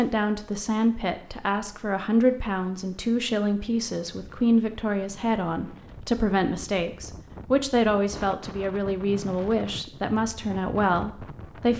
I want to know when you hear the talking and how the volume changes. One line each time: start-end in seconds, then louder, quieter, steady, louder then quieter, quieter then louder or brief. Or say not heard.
0.0-11.7 steady.